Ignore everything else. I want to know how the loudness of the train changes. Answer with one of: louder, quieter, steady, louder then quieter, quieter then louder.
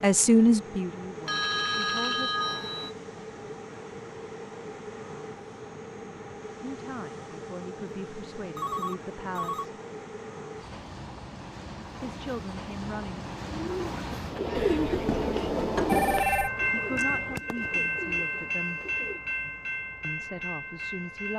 louder.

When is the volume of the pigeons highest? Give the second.
15 s.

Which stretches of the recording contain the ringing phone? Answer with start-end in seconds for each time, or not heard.
1.2-2.9, 8.6-9.7, 14.6-16.5.